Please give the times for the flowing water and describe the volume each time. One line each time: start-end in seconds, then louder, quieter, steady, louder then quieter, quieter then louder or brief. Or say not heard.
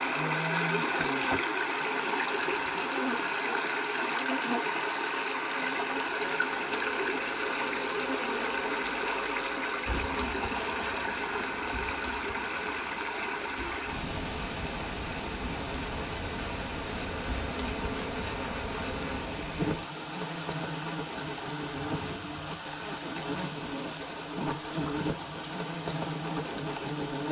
0.0-27.2 quieter.